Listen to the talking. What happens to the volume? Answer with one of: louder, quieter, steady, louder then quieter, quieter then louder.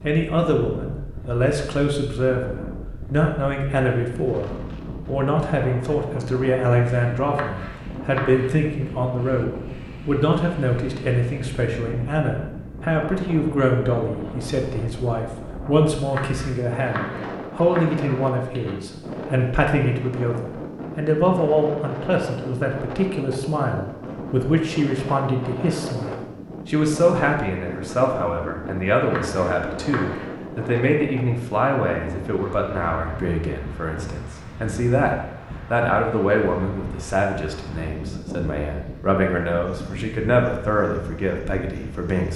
steady.